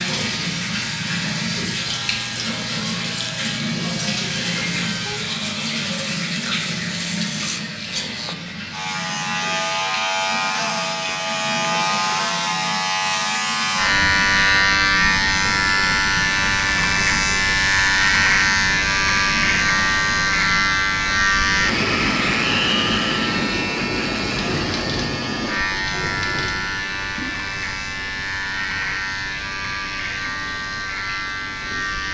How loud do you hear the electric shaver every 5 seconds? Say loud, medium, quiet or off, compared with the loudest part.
quiet, medium, loud, loud, loud, medium, medium.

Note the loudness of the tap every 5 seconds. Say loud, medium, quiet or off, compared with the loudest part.
loud, loud, medium, medium, medium, medium, quiet.